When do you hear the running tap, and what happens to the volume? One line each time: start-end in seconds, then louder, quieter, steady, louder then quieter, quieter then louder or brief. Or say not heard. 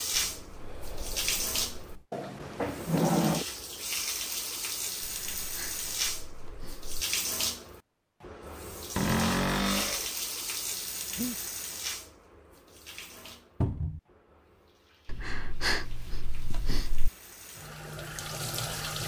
0.0-19.0 quieter.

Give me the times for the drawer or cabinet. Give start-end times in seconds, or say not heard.
2.1-3.5, 8.9-10.1, 13.6-14.0.